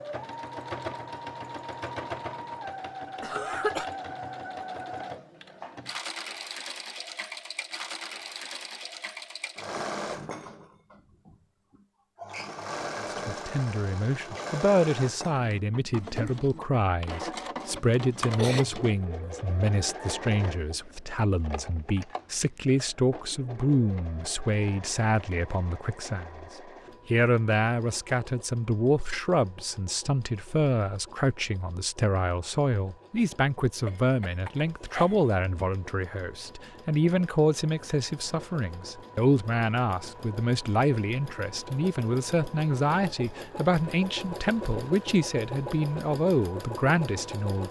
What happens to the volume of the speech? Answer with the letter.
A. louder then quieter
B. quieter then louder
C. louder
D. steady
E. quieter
D.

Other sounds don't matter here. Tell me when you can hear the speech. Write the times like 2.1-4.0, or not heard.
13.1-47.6.